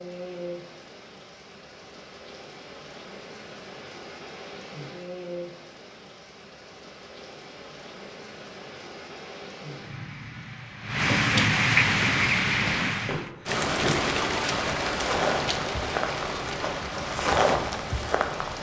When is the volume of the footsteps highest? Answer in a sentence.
The loudest moment of the footsteps is at 17 seconds.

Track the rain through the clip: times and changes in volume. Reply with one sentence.
The rain can be heard from 0.0 to 18.5 s, getting louder then quieter.